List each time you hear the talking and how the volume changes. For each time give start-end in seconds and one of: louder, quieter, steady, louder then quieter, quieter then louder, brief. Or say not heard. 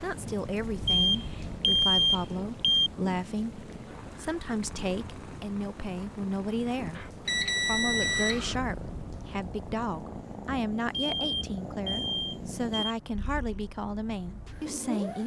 0.0-15.2 steady.